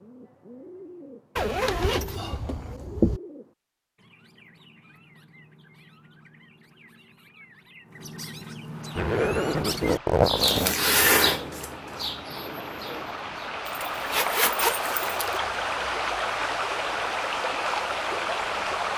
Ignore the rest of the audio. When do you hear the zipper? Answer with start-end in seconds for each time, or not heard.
1.4-3.2, 8.9-10.8, 13.7-15.4.